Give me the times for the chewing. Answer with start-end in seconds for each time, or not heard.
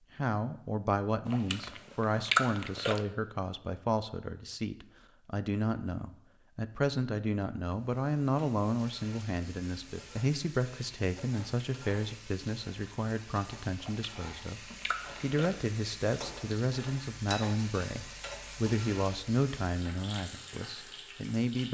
1.2-3.0, 13.8-15.6.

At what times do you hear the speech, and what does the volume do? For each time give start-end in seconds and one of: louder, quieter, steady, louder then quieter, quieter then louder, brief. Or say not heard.
0.1-21.6 steady.